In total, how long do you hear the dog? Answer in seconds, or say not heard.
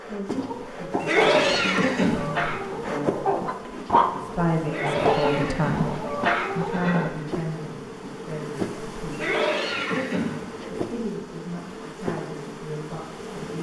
not heard.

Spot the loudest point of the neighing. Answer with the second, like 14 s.
1 s.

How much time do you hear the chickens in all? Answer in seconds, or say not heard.
7 s.